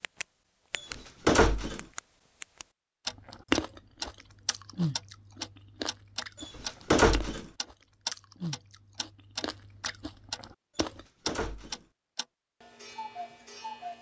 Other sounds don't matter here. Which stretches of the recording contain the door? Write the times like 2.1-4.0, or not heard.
0.8-1.9, 6.4-7.5, 10.8-11.8.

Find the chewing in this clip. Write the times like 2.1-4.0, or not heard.
3.1-11.1.